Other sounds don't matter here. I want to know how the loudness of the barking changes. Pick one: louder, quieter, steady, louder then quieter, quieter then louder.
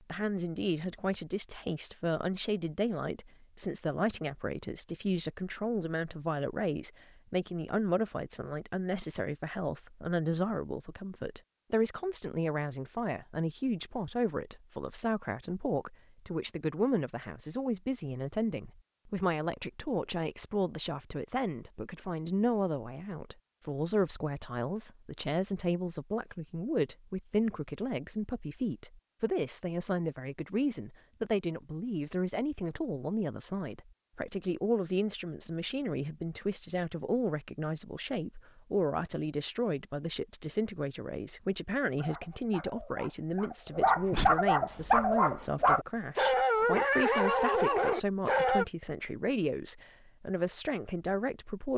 louder.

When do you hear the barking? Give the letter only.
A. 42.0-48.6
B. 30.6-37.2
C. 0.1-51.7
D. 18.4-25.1
A.